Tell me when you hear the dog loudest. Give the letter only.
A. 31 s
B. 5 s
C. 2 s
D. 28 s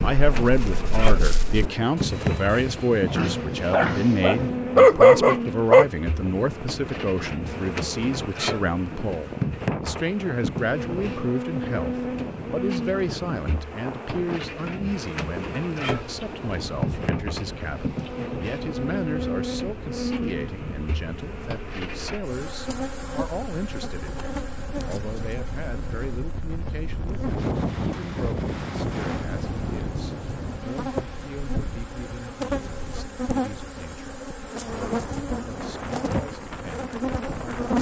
B.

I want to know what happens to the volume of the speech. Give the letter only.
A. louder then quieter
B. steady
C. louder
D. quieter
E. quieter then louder
D.